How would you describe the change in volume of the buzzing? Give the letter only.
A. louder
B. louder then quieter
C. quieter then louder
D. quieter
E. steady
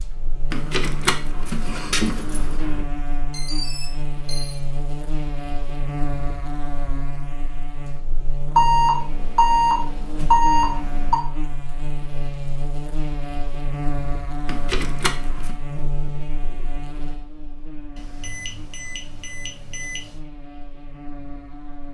D.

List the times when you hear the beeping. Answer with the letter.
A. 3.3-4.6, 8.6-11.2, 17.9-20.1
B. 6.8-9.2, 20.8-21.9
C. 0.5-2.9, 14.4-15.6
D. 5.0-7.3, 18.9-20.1
A.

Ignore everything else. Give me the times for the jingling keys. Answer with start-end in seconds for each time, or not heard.
0.5-2.9, 14.4-15.6.